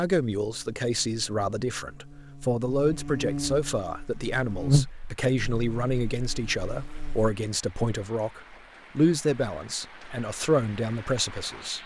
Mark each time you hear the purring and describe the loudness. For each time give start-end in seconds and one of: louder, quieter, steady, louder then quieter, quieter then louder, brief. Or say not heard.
not heard.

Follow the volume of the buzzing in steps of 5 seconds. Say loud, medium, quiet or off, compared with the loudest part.
loud, quiet, off.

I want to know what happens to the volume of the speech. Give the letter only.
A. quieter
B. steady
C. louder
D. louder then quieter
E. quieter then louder
B.